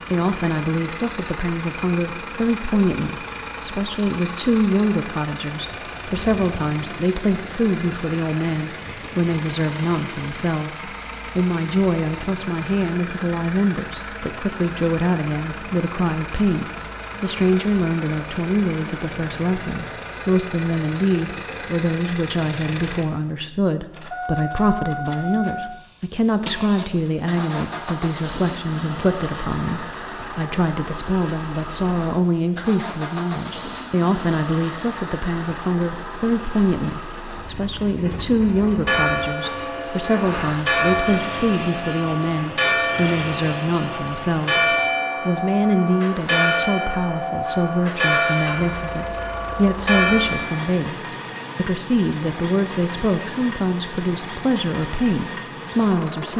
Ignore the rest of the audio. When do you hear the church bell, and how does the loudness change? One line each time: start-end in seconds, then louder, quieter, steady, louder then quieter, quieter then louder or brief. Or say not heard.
38.5-50.8 steady.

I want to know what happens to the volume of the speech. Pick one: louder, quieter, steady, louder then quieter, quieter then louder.
steady.